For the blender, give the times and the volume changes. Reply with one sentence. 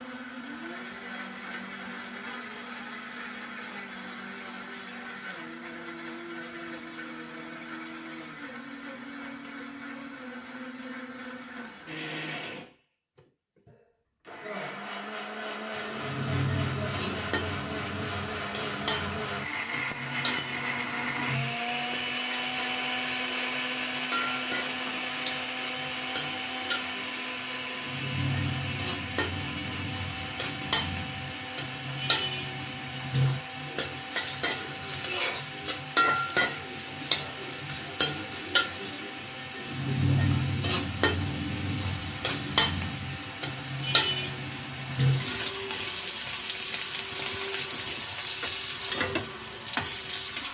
The blender can be heard from 0.0 to 50.4 s, getting louder then quieter.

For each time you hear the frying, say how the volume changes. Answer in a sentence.
The frying can be heard from 15.8 to 50.4 s, getting louder.